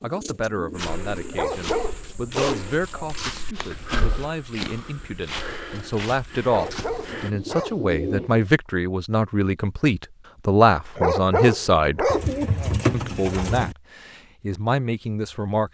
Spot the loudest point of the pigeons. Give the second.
13 s.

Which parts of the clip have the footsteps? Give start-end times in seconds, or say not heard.
0.8-7.3.